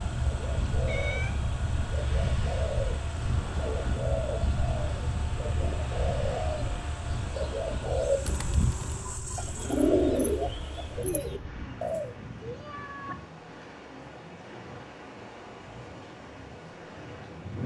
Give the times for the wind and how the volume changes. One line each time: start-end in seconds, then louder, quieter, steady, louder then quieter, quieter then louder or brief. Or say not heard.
0.0-17.6 quieter.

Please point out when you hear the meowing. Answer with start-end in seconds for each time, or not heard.
0.8-1.4, 12.4-13.2.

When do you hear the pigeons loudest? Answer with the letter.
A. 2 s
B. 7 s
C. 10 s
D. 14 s
C.